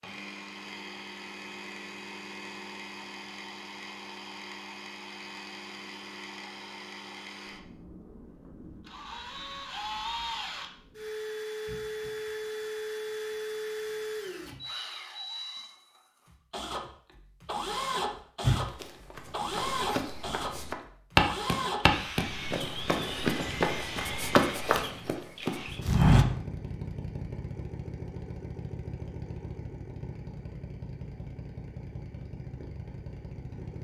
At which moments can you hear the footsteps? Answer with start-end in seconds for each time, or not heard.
18.4-26.2.